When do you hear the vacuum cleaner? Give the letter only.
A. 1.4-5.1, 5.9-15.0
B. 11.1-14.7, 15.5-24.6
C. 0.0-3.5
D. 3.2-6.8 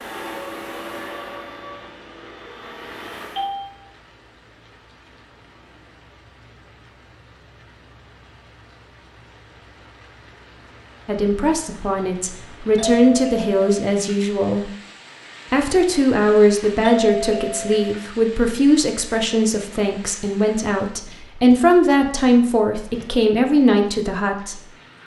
C.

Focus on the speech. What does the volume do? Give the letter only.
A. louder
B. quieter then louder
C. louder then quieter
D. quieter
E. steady
E.